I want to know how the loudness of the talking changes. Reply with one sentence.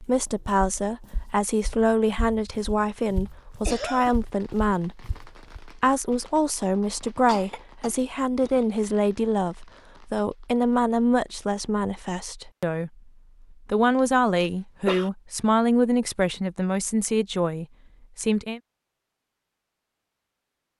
The volume of the talking stays about the same.